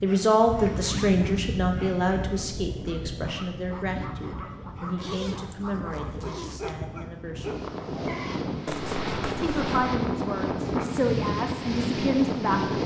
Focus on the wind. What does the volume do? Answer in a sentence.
The loudness of the wind goes down, then up.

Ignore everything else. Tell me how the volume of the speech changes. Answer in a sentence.
The loudness of the speech goes down, then up.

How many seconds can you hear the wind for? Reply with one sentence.
You can hear the wind for 13 seconds altogether.